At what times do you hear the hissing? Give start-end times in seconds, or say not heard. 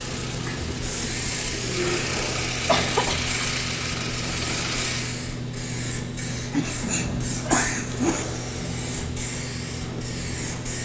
0.0-10.8.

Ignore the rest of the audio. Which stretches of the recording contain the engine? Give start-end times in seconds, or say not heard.
0.0-5.2.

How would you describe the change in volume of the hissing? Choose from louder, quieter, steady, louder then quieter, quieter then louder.
steady.